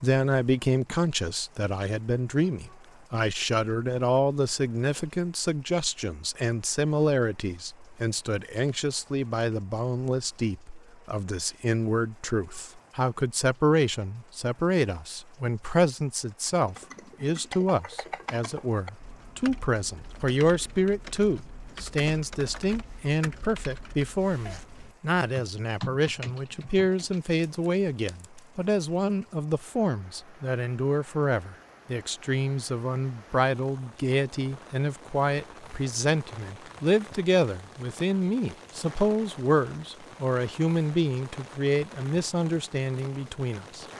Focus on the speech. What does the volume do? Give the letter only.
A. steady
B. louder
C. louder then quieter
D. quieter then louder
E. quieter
A.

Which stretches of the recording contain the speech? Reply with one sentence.
The speech can be heard from 0.0 to 43.9 s.